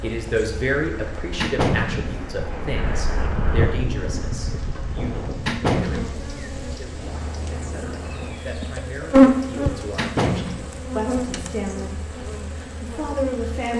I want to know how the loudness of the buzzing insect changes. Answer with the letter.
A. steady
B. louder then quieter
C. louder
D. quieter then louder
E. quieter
B.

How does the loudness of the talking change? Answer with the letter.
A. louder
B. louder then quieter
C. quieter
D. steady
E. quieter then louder
E.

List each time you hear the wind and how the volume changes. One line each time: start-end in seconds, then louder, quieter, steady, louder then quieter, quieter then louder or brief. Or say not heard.
0.0-8.4 louder then quieter.